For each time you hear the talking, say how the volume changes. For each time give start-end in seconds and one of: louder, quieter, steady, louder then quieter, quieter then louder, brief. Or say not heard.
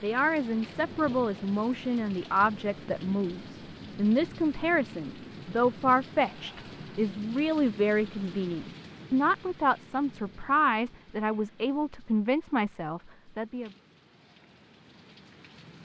0.0-13.7 steady.